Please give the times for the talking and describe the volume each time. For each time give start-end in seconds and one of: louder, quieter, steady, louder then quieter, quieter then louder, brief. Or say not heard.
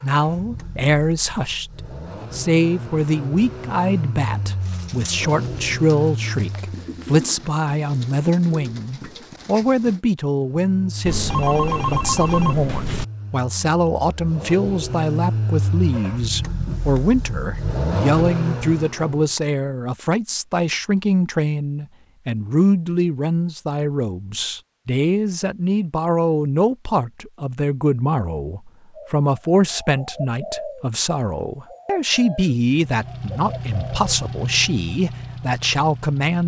0.0-36.4 steady.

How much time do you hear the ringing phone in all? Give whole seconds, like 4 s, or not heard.
2 s.